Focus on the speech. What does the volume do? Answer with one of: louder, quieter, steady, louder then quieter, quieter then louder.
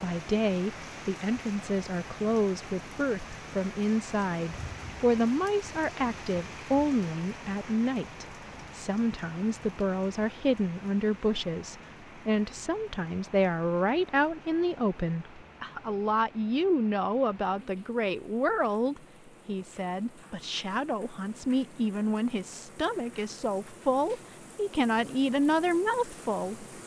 steady.